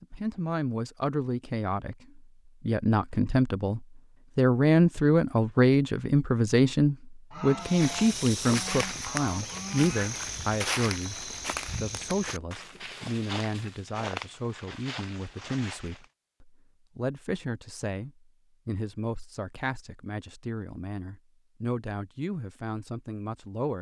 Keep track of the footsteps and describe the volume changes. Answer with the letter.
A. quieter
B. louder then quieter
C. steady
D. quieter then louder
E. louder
A.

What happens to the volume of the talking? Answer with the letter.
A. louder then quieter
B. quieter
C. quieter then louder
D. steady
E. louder
B.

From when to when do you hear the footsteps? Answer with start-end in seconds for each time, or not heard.
7.5-16.1.